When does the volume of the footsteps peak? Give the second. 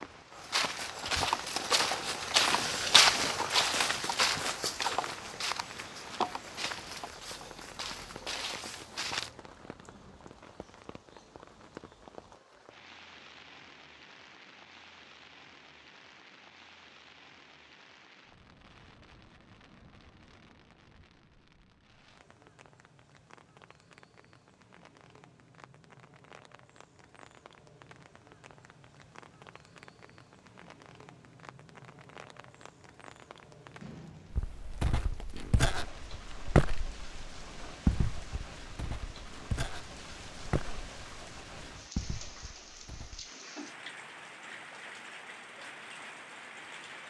3 s.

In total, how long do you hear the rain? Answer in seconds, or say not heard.
47 s.